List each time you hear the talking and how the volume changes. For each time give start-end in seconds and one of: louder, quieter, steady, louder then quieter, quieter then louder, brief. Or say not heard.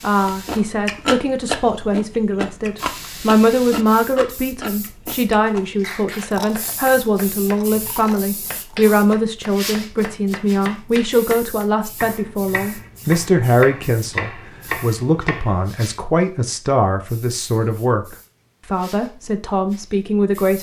0.0-20.5 steady.